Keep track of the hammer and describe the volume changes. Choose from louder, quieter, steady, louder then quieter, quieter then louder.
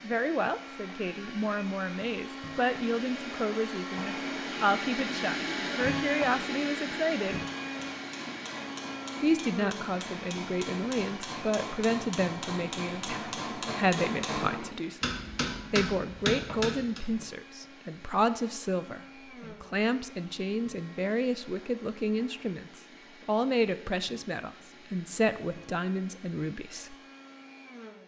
louder.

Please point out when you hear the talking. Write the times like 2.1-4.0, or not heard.
0.0-7.4, 9.2-15.0, 15.7-26.9.